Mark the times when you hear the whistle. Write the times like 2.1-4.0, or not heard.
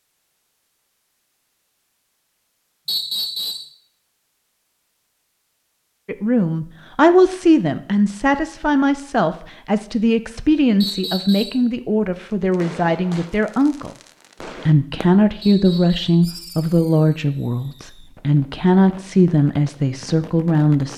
2.9-3.7, 10.8-11.7, 15.4-16.2.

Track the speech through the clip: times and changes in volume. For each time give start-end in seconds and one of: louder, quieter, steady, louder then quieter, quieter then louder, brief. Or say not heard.
6.0-20.9 steady.